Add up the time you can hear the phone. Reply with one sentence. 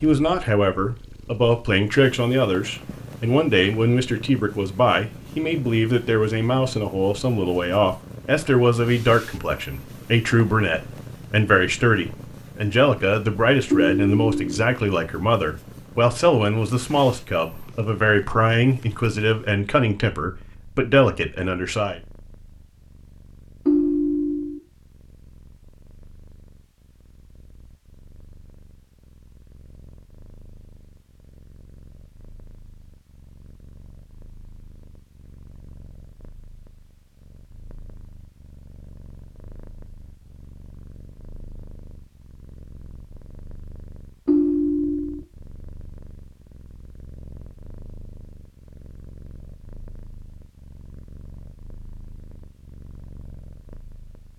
The phone can be heard for 3 seconds in total.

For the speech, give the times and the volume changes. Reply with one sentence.
You can hear the speech from 0.0 to 22.0 s, at a steady volume.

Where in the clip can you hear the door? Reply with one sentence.
The door can't be heard in this clip.